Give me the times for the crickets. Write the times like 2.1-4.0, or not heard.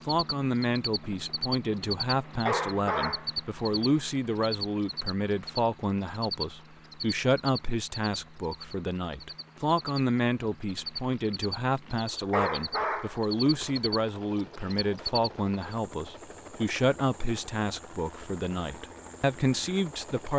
0.0-20.3.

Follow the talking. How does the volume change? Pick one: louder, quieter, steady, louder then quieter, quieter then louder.
steady.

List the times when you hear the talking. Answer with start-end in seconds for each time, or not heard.
0.1-20.3.